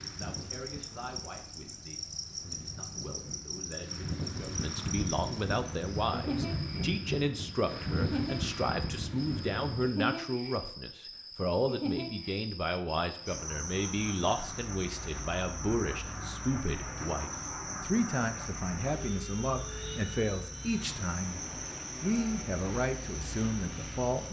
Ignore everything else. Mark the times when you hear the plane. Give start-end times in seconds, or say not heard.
0.0-9.9, 13.1-24.2.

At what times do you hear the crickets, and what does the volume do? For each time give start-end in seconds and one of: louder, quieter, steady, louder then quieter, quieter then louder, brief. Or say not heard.
0.0-24.2 steady.